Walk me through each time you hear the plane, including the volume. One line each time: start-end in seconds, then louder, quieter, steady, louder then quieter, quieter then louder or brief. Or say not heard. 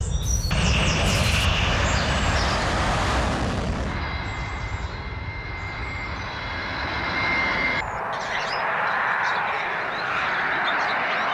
0.0-11.2 quieter then louder.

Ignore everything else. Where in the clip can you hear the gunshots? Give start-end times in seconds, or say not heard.
1.1-1.5.